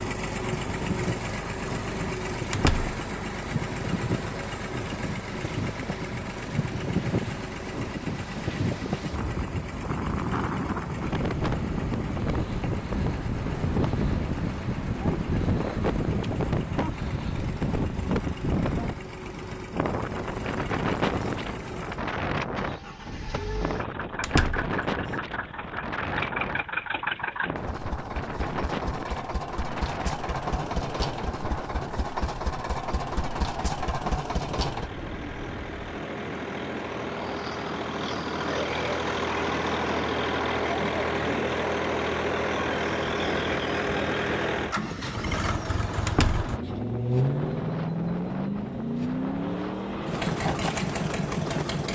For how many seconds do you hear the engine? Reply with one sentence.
You can hear the engine for 52 seconds altogether.